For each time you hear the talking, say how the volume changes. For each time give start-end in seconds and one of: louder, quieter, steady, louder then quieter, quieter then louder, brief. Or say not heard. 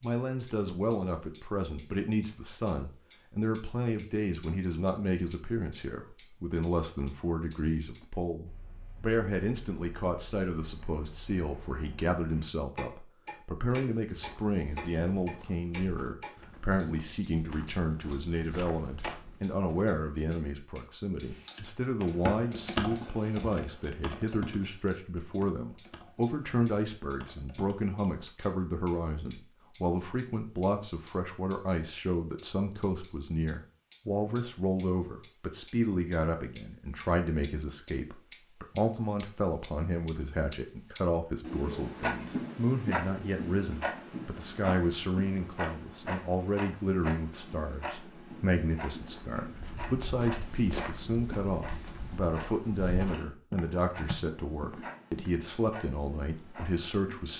0.0-57.3 steady.